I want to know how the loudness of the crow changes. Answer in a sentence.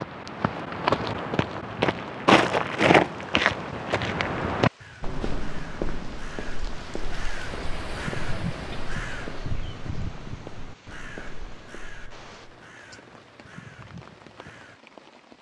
The loudness of the crow goes up, then down.